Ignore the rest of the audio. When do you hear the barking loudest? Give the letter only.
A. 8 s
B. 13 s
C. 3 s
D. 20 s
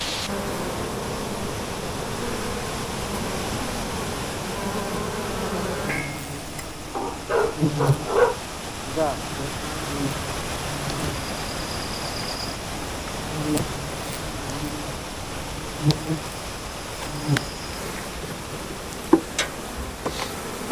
A.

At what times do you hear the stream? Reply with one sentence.
You can hear the stream from 0.0 to 20.6 s.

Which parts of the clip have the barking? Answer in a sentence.
The barking can be heard from 6.9 to 8.4 s.